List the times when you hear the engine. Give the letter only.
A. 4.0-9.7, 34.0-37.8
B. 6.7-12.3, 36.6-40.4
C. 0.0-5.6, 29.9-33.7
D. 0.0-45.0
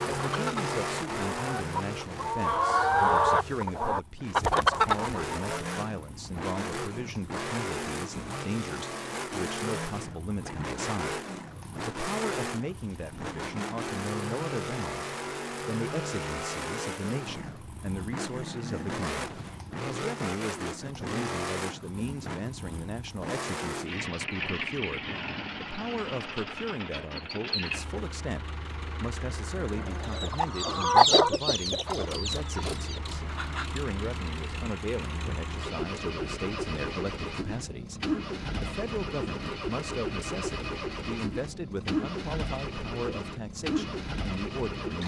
D.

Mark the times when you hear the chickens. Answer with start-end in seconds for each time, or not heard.
0.0-5.6, 29.9-33.7.